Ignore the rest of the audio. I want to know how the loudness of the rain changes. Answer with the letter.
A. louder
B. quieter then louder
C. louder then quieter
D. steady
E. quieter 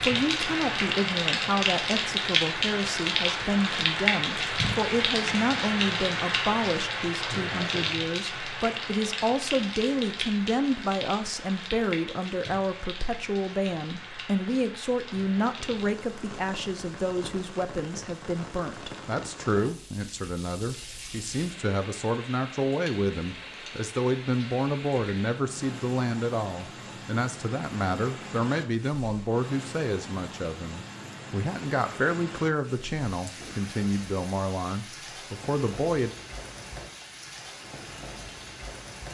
E.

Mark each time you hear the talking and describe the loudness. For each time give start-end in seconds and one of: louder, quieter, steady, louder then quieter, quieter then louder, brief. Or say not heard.
0.0-36.1 steady.